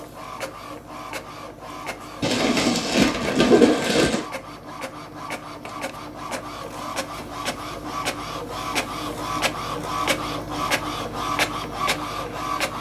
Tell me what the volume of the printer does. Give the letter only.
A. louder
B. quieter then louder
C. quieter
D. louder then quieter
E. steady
A.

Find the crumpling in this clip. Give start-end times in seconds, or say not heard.
2.2-4.2.